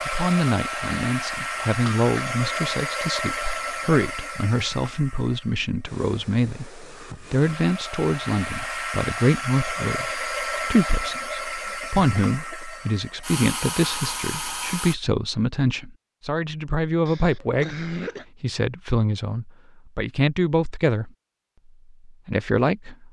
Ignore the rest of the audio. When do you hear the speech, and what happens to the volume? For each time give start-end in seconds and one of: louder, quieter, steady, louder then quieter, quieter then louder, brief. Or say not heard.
0.1-21.1 steady
22.1-23.0 brief.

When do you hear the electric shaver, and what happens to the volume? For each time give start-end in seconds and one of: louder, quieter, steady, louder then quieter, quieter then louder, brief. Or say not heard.
not heard.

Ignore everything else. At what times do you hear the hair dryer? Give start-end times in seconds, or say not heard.
0.0-14.9.